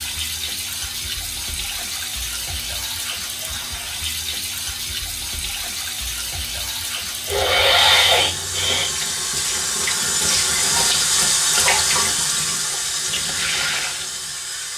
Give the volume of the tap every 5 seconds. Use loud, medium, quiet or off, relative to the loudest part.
medium, medium, loud.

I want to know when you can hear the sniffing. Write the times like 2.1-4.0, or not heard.
7.2-8.9.